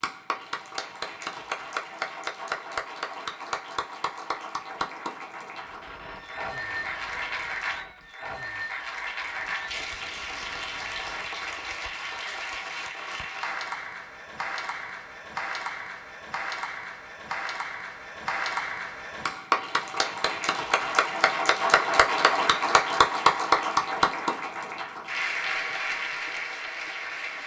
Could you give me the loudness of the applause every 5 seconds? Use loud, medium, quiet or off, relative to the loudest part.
medium, medium, medium, medium, loud, medium.